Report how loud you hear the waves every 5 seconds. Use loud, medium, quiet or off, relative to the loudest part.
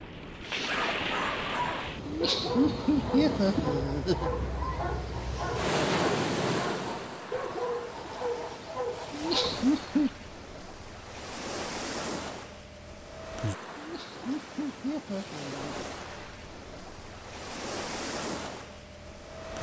loud, loud, medium, medium.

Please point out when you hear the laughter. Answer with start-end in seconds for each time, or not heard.
2.0-4.3, 9.1-10.1, 13.8-15.8.